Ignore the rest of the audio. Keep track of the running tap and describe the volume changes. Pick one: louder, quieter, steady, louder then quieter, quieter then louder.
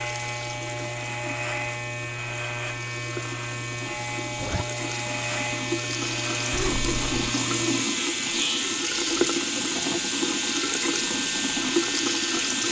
louder.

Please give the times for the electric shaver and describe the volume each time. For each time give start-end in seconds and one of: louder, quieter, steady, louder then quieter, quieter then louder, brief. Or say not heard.
0.0-12.6 steady.